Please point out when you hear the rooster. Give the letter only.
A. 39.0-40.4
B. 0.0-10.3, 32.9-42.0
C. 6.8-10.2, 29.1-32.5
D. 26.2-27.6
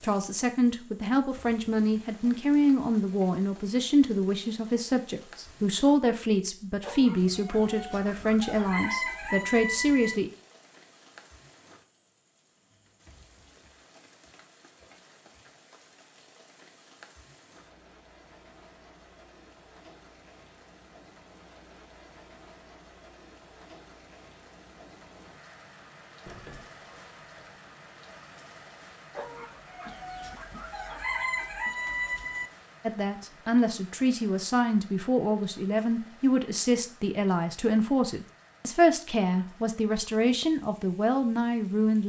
C.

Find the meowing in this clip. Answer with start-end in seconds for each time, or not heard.
26.2-27.6.